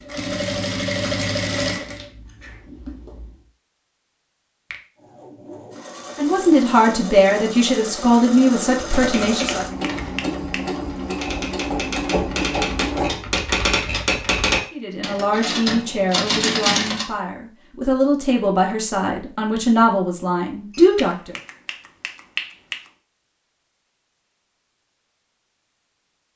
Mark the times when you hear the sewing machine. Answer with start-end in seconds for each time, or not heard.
0.0-3.3, 5.0-13.4.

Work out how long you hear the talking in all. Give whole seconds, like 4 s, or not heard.
10 s.